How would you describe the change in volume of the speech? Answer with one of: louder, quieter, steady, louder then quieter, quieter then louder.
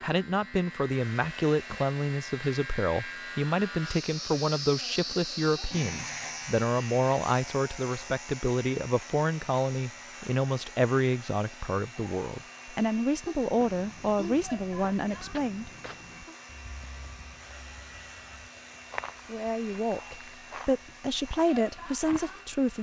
steady.